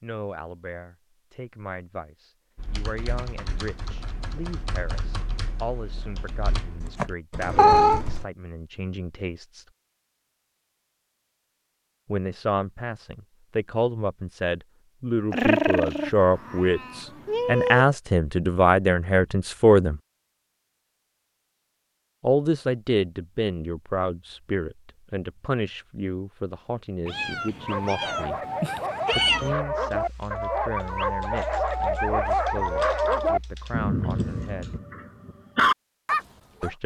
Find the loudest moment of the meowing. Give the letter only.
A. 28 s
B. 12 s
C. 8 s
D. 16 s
C.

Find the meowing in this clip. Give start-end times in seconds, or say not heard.
7.5-8.0, 15.3-17.9, 27.1-29.6.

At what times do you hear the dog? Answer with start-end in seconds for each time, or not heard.
27.6-36.7.